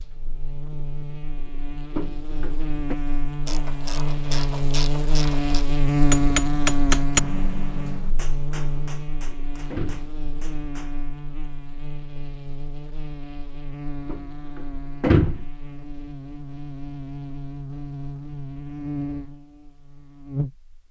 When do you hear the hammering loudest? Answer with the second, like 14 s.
7 s.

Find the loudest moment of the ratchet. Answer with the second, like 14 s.
5 s.